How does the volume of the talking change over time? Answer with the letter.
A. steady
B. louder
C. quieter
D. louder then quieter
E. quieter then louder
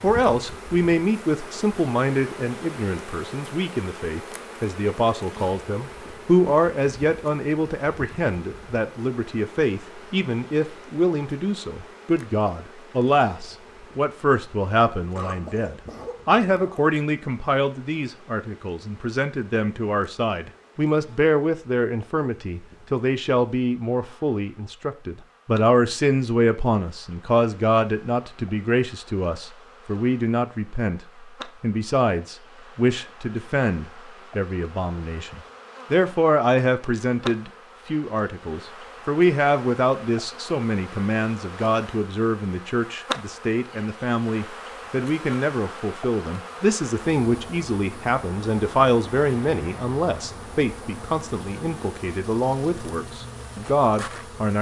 A.